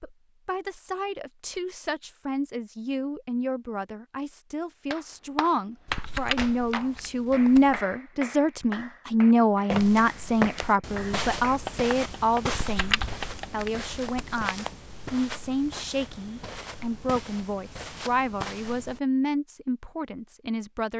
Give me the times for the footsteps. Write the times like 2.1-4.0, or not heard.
9.7-19.0.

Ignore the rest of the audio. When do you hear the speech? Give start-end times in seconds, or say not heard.
0.0-20.9.